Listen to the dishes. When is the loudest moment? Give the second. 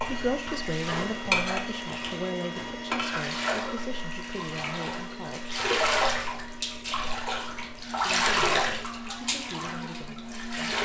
1 s.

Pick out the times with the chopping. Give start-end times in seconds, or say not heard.
not heard.